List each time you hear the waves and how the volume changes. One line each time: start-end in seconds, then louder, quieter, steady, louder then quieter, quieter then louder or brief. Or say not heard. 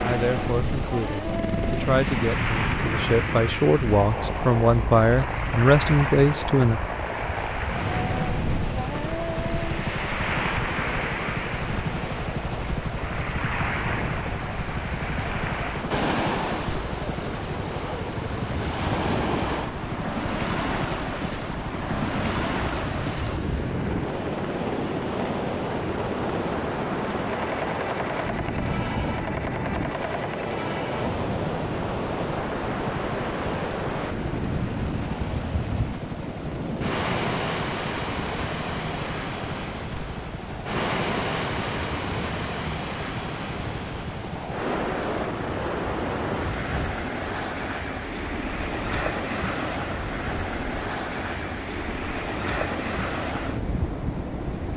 0.0-54.7 steady.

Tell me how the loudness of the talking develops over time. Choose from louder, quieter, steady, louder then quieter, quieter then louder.
louder.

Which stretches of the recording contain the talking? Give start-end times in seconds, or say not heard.
0.0-6.8.